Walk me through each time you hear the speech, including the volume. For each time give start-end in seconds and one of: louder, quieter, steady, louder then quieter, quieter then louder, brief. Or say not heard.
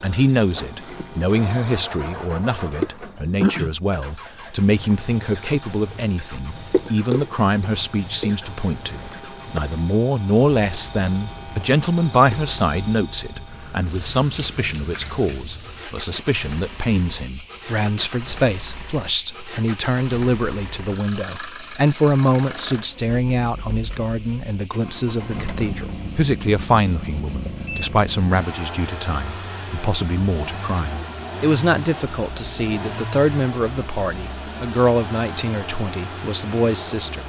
0.0-37.2 steady.